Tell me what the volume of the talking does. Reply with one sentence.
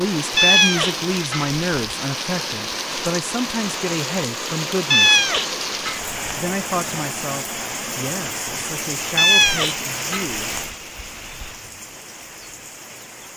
The loudness of the talking goes down.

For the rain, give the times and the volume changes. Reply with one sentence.
The rain can be heard from 0.0 to 13.3 s, getting quieter.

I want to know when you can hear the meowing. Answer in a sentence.
You can hear the meowing from 0.3 to 1.9 s, from 4.9 to 6.2 s and from 9.2 to 11.6 s.